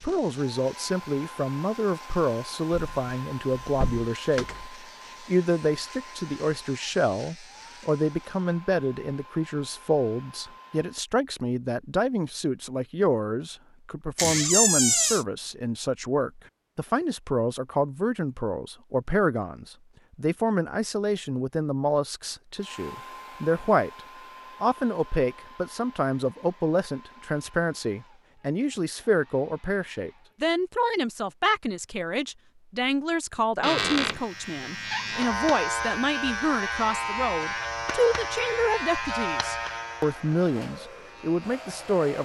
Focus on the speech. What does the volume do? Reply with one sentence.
The volume of the speech stays about the same.